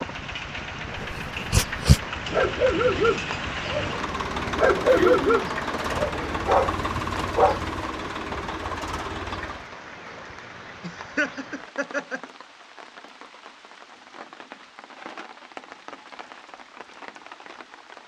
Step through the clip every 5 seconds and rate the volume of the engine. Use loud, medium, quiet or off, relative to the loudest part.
loud, loud, off, off.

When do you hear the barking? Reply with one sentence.
The barking can be heard from 0.9 to 7.7 s.